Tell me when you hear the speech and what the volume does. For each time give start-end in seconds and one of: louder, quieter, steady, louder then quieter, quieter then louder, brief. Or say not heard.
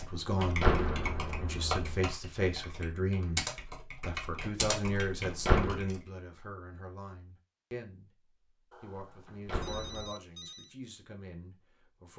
0.0-12.1 quieter.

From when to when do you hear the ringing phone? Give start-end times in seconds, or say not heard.
8.7-10.8.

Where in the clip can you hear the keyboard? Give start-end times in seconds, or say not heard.
0.0-6.0.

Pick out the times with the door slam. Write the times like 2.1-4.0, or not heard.
0.1-2.0, 5.2-5.8, 9.2-10.1.